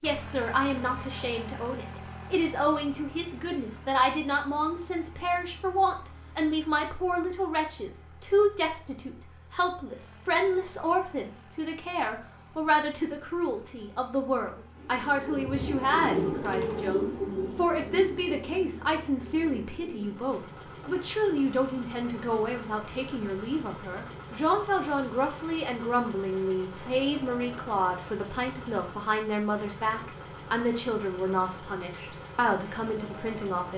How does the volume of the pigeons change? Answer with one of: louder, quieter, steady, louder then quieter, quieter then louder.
quieter.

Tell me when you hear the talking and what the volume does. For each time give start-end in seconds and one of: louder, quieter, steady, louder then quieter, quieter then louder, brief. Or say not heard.
0.0-33.7 steady.